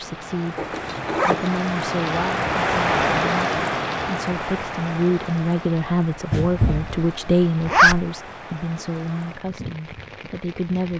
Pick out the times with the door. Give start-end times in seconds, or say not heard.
6.3-7.0.